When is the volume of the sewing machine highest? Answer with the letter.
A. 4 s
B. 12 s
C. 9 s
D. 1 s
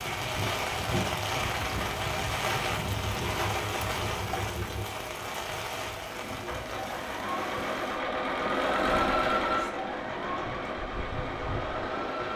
C.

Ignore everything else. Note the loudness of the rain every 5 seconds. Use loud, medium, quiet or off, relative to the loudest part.
loud, medium, medium.